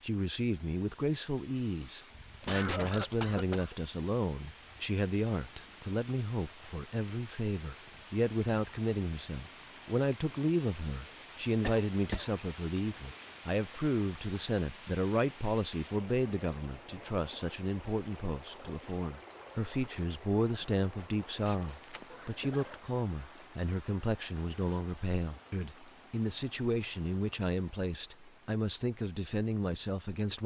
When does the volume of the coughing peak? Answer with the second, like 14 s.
3 s.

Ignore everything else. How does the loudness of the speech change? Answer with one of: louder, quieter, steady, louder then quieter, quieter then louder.
steady.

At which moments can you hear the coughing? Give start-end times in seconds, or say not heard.
2.4-3.8, 11.6-12.3, 21.4-22.5.